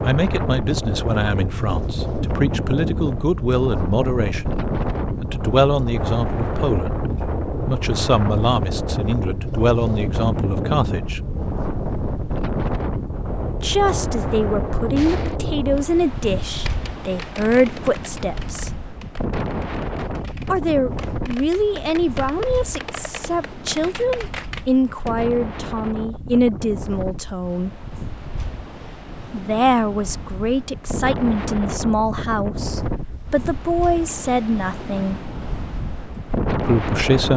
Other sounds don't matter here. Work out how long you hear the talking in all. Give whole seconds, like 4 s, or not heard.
30 s.